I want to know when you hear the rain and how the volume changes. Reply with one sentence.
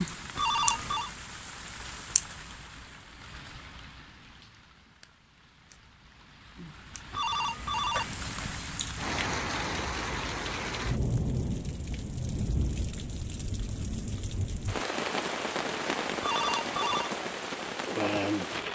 You can hear the rain from 0.0 to 18.7 s, getting quieter then louder.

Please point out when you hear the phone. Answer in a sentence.
You can hear the phone from 0.3 to 1.1 s, from 7.1 to 8.8 s and from 16.2 to 17.1 s.